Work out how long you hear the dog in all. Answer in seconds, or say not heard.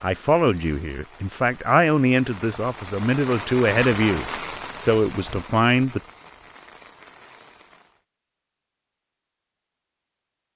not heard.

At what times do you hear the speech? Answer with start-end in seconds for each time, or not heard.
0.0-6.0.